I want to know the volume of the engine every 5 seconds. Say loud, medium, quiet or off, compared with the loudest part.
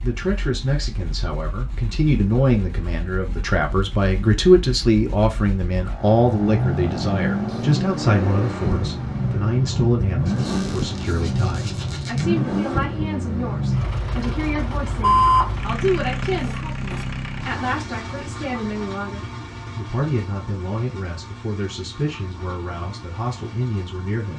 quiet, loud, loud, medium, quiet.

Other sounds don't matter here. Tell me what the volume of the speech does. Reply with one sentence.
The volume of the speech goes down.